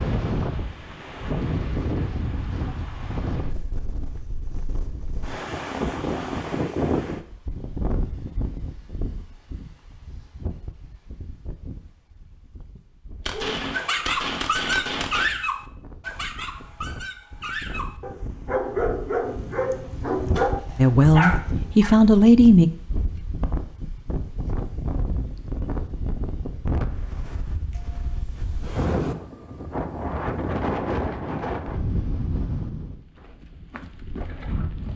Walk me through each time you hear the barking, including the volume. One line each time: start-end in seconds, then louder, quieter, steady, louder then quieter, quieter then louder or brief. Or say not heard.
13.3-21.9 quieter then louder.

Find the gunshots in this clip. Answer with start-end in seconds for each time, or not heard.
13.2-15.2, 19.2-21.5.